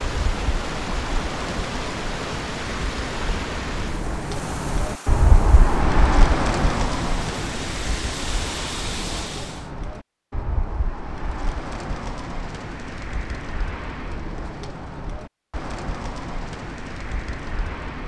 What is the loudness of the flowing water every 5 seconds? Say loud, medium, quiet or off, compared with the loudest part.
loud, loud, off, off.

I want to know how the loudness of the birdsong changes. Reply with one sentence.
The loudness of the birdsong goes up, then down.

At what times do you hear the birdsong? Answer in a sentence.
The birdsong can be heard from 0.0 to 18.0 s.